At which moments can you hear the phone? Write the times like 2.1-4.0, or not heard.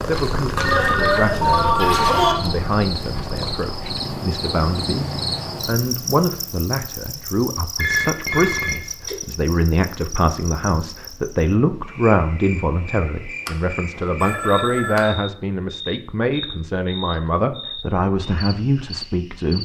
0.6-2.4, 7.8-9.2, 13.4-15.1.